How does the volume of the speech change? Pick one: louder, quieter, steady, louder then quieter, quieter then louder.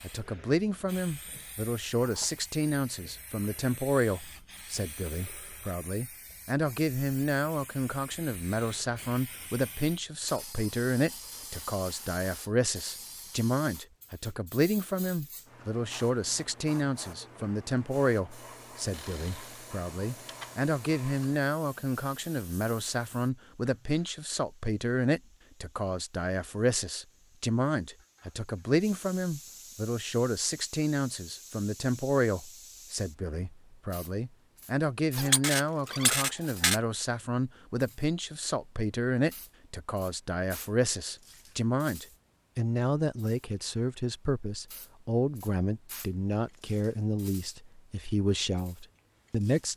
steady.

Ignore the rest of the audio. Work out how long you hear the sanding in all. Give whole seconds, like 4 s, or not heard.
not heard.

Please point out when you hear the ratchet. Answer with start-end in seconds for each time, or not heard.
18.9-20.5, 35.1-36.8.